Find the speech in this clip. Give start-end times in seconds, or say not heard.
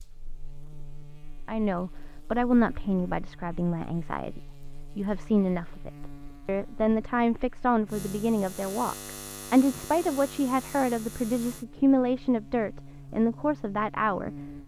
1.4-14.6.